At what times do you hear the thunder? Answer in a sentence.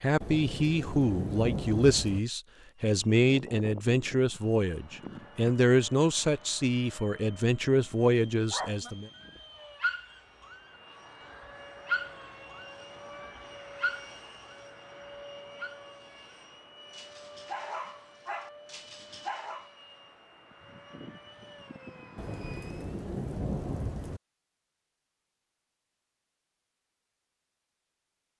The thunder can be heard from 0.2 to 2.2 s and from 22.1 to 24.2 s.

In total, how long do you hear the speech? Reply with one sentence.
You can hear the speech for 9 seconds altogether.